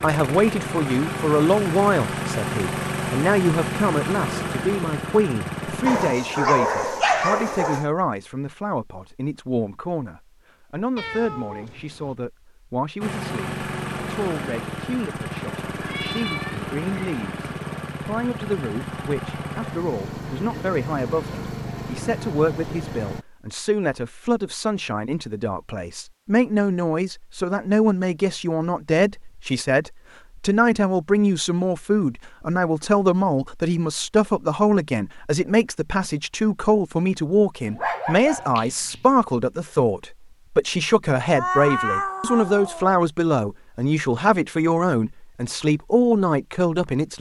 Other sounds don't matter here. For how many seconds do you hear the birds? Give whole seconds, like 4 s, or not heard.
not heard.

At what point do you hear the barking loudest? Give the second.
7 s.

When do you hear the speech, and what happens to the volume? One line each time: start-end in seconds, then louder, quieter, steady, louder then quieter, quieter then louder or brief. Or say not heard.
0.0-47.1 quieter then louder.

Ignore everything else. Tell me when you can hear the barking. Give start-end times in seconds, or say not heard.
5.8-7.8, 37.6-39.0.